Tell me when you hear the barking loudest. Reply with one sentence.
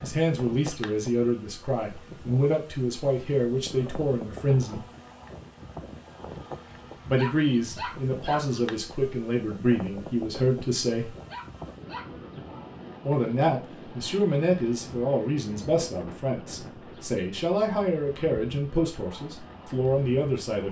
The loudest moment of the barking is at 8 seconds.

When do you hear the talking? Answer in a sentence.
You can hear the talking from 0.0 to 4.8 s, from 7.0 to 11.2 s and from 13.1 to 20.6 s.